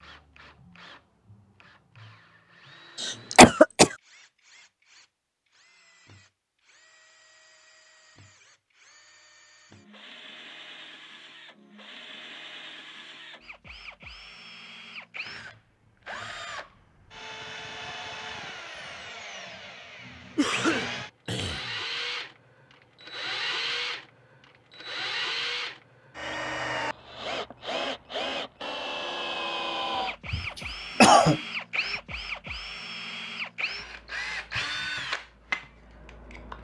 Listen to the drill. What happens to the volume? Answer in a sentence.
The loudness of the drill goes up.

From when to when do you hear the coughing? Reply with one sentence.
The coughing can be heard from 3.0 to 3.9 s, from 20.4 to 21.8 s and from 30.3 to 31.4 s.